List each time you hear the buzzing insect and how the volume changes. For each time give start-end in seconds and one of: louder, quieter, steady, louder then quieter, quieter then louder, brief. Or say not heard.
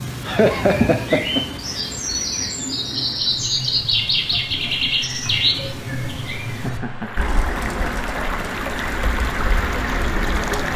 not heard.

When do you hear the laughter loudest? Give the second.
1 s.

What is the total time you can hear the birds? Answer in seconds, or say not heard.
11 s.